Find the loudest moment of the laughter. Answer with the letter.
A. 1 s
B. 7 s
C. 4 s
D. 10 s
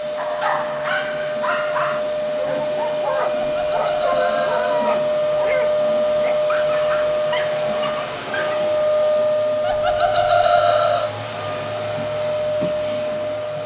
D.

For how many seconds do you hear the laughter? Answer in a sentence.
You can hear the laughter for 3 seconds altogether.